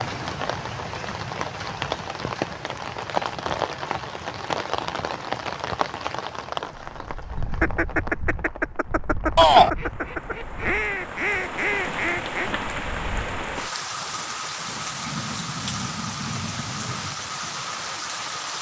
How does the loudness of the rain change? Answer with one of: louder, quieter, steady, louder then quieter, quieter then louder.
quieter then louder.